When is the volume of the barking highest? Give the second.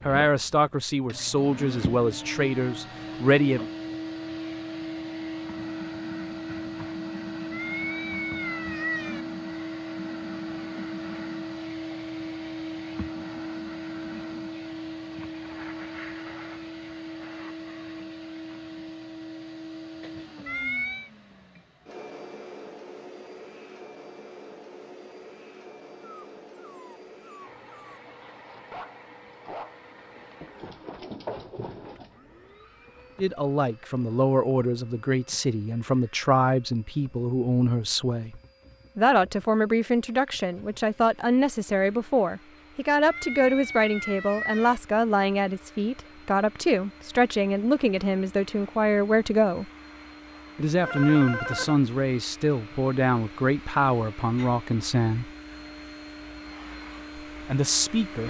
31 s.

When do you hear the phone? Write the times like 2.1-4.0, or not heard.
50.8-51.8.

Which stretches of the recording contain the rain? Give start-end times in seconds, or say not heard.
not heard.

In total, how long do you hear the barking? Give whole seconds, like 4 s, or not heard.
6 s.